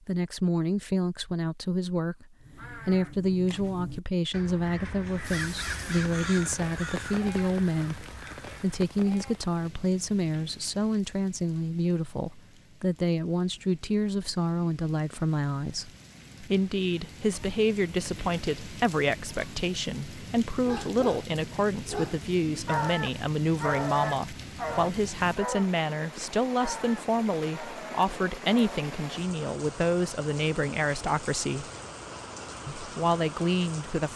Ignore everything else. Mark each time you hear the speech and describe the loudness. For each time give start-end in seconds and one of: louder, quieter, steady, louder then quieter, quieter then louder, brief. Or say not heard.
0.1-31.6 steady
32.8-34.1 brief.